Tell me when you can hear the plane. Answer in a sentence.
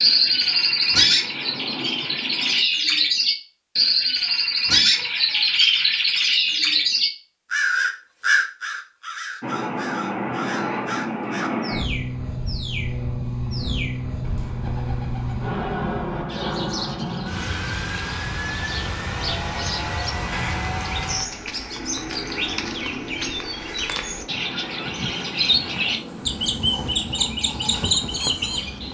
The plane can be heard from 0.0 to 2.6 s and from 9.4 to 28.8 s.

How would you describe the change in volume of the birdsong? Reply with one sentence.
The loudness of the birdsong goes down, then up.